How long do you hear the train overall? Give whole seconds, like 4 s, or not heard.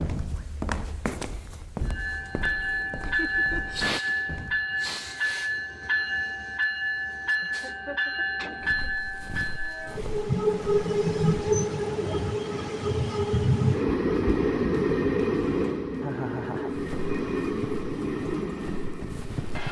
18 s.